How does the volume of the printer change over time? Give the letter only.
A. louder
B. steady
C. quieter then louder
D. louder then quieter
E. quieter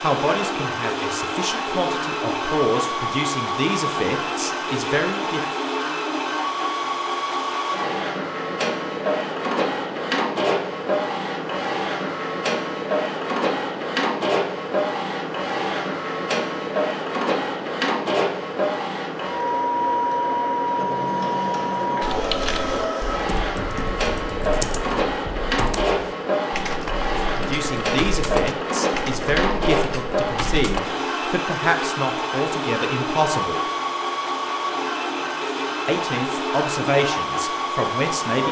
B.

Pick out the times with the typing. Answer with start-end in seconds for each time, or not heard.
22.0-30.8.